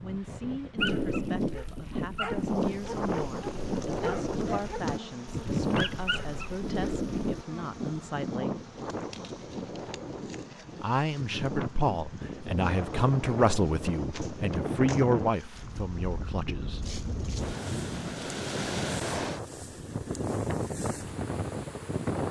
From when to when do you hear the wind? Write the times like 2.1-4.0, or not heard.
0.0-22.2.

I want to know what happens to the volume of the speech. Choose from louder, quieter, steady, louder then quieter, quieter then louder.
louder.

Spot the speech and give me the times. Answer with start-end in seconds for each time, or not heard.
0.0-8.6, 10.8-16.8.